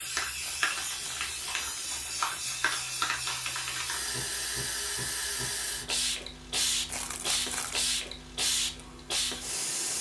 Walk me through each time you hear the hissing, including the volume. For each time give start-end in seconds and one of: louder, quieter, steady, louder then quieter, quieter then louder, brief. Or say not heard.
0.0-9.9 steady.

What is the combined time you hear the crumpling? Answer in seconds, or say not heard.
3 s.